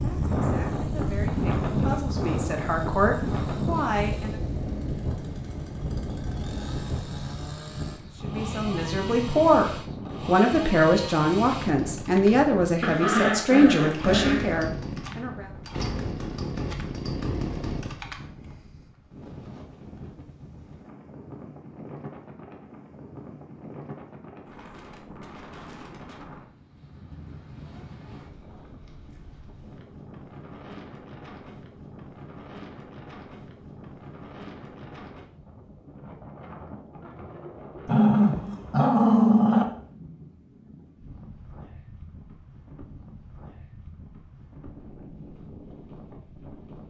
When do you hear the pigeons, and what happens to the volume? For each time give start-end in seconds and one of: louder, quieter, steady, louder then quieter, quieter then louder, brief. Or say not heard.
not heard.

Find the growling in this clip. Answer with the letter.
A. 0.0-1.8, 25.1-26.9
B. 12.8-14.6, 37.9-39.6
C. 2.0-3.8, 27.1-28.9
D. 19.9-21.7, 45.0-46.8
B.